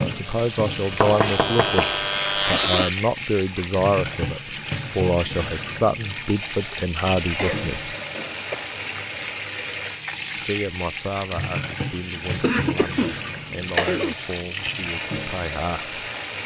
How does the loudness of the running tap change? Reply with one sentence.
The volume of the running tap stays about the same.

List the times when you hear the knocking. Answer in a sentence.
The knocking can be heard from 0.9 to 2.2 s.